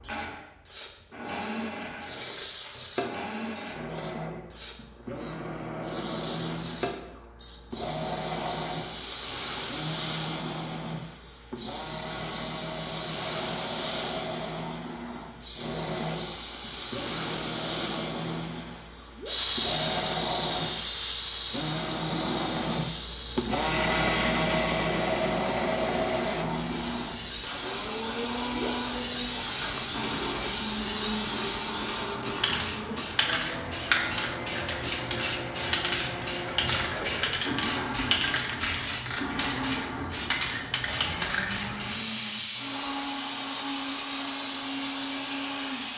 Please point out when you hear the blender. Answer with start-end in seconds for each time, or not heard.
0.0-45.9.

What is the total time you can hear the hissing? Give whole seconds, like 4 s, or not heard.
46 s.